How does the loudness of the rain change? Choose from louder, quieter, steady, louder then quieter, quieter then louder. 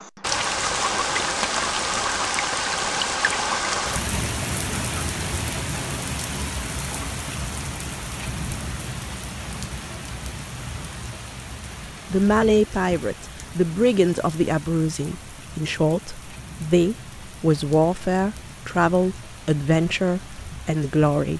quieter.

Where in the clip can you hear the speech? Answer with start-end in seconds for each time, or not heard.
12.1-21.3.